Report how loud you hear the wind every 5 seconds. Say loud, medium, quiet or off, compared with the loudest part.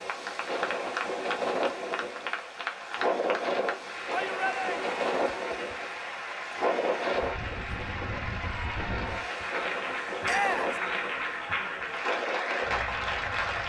loud, loud, medium.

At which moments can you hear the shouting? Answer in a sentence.
You can hear the shouting from 4.1 to 4.8 s and from 10.2 to 10.8 s.